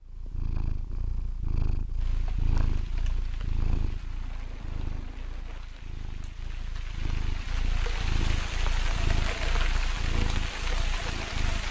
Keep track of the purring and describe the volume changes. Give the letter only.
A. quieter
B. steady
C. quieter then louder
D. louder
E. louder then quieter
C.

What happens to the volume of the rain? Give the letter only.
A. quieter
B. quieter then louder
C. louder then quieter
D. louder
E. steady
D.